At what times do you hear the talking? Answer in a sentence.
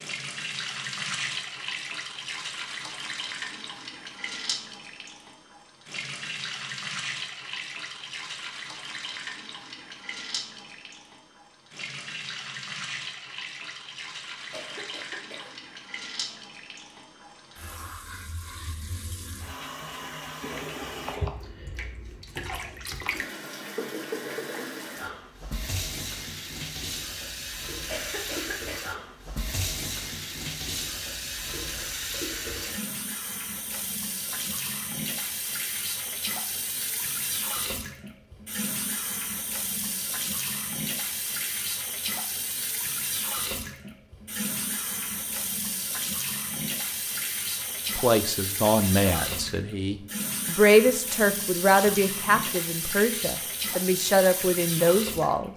The talking can be heard from 48.0 to 55.5 s.